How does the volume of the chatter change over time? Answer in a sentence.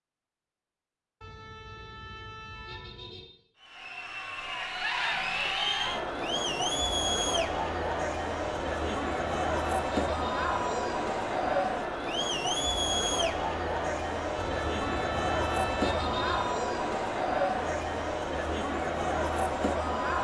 The loudness of the chatter stays about the same.